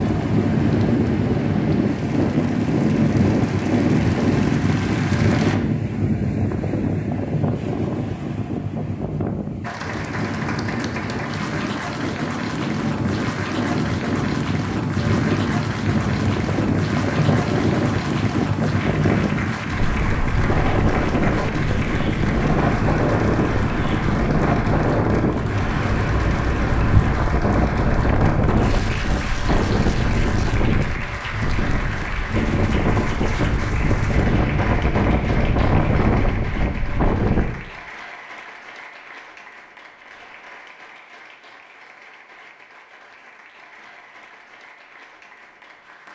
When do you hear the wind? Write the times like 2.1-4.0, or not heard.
0.0-37.5.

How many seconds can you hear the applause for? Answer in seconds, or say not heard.
42 s.